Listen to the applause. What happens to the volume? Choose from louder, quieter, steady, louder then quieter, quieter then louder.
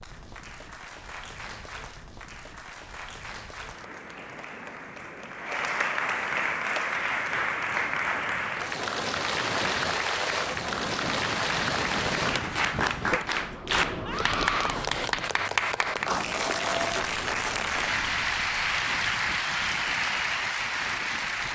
louder.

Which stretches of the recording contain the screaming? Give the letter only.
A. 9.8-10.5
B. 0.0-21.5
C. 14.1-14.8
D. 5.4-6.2
C.